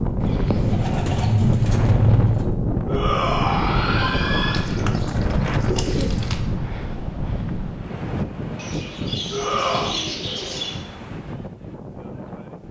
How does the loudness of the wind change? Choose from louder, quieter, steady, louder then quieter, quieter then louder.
quieter.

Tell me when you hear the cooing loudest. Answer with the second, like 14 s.
2 s.